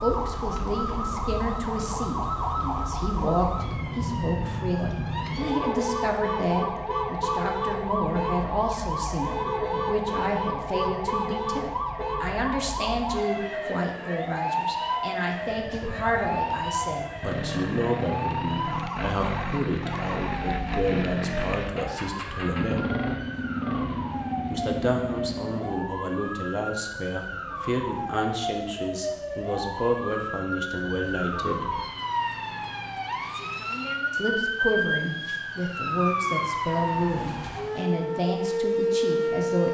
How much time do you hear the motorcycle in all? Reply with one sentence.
The motorcycle can be heard for 10 seconds in total.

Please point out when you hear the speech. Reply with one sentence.
The speech can be heard from 0.0 to 22.8 s, from 24.4 to 31.8 s and from 34.1 to 39.7 s.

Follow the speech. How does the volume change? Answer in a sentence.
The volume of the speech stays about the same.